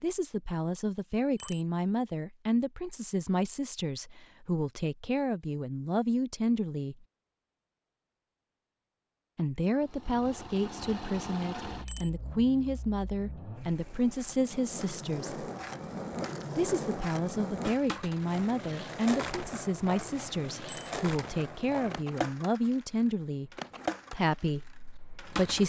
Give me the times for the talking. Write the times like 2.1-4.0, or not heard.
0.0-7.0, 9.3-15.4, 16.6-23.5, 24.1-25.6.